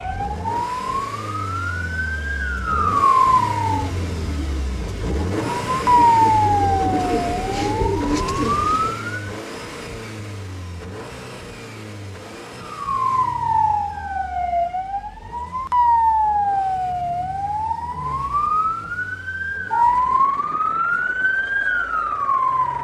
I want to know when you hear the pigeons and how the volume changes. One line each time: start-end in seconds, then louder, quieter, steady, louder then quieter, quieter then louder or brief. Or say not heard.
3.6-8.9 louder.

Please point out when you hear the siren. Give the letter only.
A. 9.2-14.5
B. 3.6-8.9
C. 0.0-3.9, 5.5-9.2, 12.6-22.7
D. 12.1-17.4
C.